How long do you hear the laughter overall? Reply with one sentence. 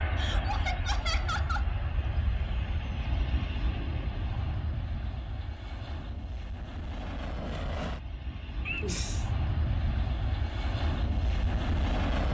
You can hear the laughter for 2 seconds altogether.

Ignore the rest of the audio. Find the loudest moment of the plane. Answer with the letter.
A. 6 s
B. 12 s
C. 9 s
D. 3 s
B.